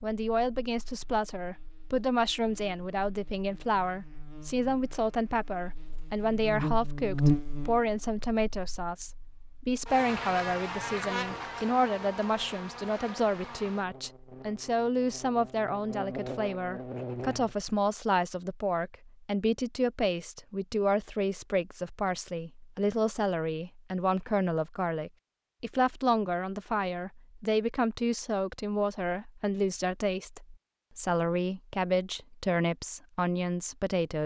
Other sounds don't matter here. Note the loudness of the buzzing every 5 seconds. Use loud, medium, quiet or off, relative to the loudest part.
quiet, loud, medium, medium, off, off, off.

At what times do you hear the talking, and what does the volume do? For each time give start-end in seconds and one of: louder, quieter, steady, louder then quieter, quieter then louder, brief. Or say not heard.
0.0-34.2 steady.